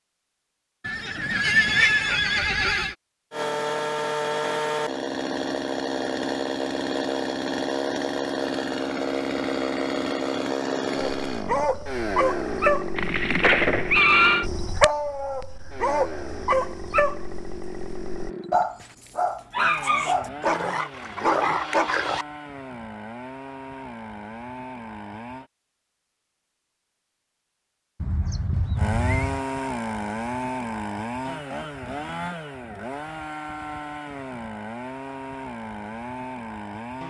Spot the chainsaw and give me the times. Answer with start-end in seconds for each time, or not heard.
3.3-25.5, 28.8-37.0.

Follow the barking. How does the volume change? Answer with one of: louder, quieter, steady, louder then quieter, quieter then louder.
steady.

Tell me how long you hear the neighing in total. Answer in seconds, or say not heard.
5 s.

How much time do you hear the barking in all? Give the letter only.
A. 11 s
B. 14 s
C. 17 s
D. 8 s
A.